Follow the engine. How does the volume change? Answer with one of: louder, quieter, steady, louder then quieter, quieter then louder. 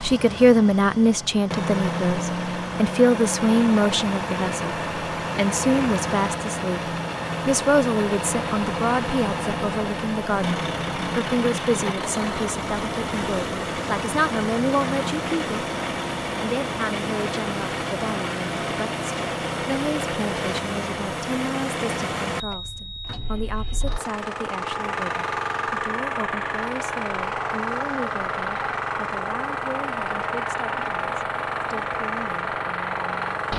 steady.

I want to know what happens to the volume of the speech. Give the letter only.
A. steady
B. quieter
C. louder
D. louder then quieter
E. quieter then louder
B.